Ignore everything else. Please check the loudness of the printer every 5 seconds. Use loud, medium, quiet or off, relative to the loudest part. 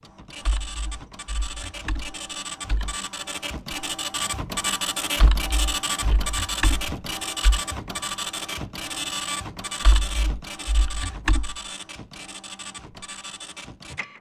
loud, loud, medium.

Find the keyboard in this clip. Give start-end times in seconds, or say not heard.
0.4-3.0, 5.2-7.6, 9.8-11.6.